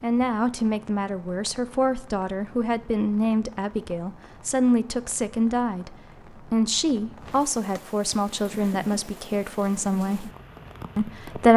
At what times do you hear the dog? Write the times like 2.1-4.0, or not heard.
not heard.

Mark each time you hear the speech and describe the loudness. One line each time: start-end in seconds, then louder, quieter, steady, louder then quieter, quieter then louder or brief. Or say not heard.
0.0-10.3 steady
10.9-11.5 brief.